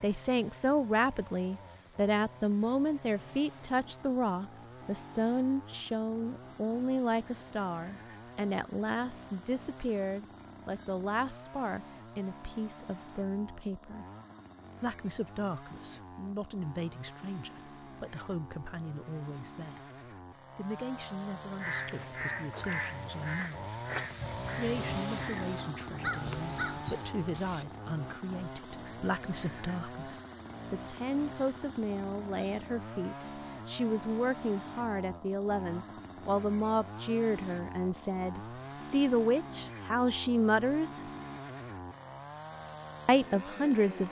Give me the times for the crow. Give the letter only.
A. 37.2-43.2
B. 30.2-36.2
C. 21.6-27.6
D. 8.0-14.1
C.